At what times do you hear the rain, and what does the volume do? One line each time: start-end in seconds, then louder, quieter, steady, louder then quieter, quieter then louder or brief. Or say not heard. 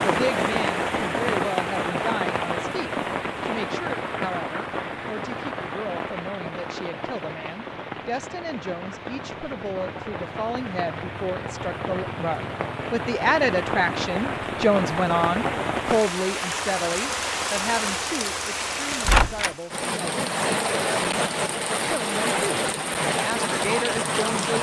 0.0-24.5 quieter then louder.